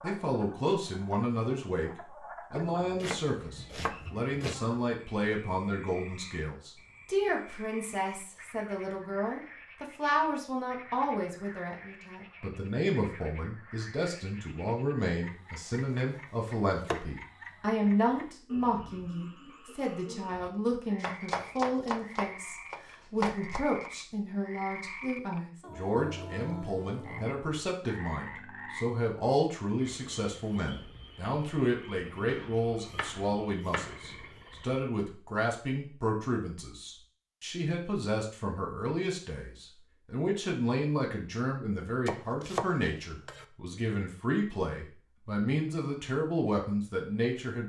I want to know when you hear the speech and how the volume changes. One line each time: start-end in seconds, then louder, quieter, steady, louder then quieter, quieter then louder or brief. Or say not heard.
0.0-47.6 steady.